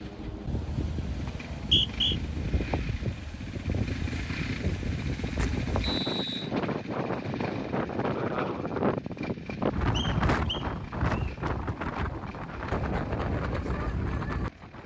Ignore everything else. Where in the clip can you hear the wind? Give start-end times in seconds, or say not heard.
0.0-14.8.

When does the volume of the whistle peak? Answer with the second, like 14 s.
2 s.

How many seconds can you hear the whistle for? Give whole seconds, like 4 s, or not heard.
3 s.